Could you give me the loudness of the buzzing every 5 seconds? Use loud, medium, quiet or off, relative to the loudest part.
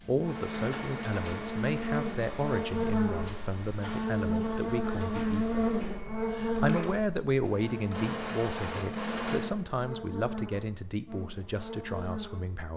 loud, loud, medium.